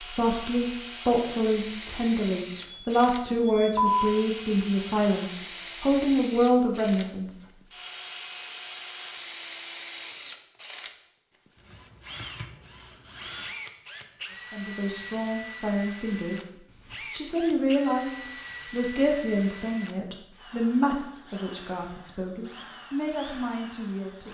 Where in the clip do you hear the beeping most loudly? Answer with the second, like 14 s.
4 s.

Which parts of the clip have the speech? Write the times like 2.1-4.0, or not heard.
0.0-7.4, 14.5-24.2.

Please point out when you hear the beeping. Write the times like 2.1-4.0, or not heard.
2.6-4.1.